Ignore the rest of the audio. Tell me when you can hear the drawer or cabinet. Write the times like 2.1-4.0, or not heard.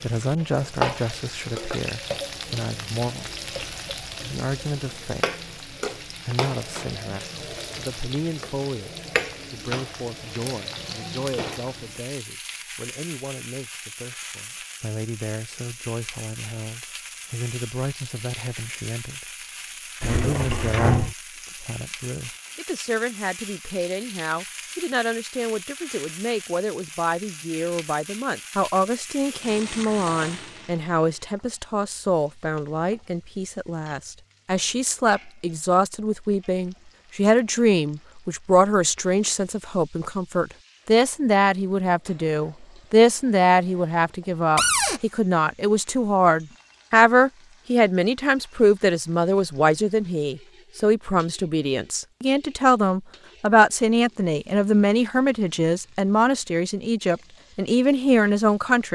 20.0-21.1, 44.5-45.0.